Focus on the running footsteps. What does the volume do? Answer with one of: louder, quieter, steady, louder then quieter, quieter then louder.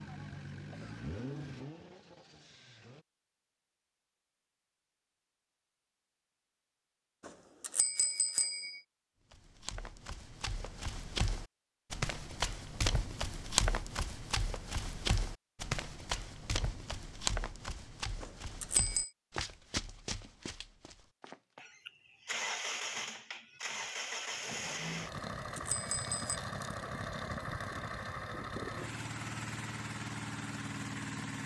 louder then quieter.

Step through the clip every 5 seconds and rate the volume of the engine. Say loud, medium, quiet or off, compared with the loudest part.
medium, off, off, off, loud, loud, loud.